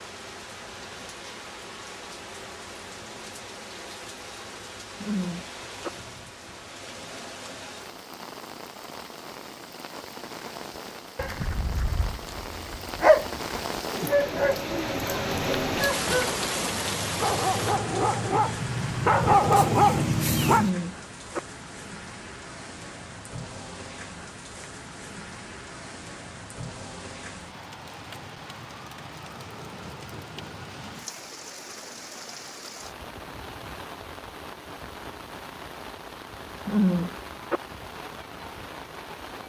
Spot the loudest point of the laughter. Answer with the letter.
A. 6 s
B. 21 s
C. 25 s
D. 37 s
D.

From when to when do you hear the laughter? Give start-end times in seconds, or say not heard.
5.0-5.9, 20.5-21.4, 36.6-37.6.